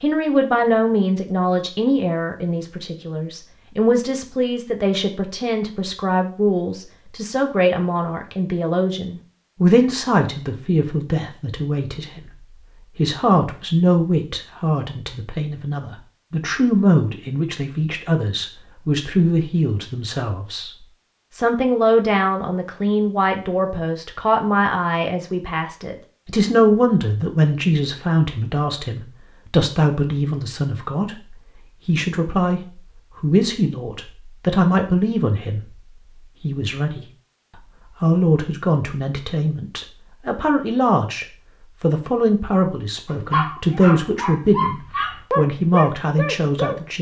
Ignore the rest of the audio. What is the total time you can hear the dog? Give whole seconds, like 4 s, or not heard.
4 s.